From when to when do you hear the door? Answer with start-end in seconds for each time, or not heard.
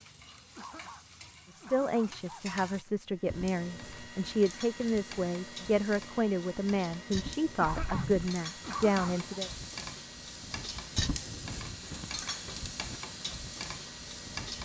7.7-8.3.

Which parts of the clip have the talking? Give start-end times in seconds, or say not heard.
1.5-9.5.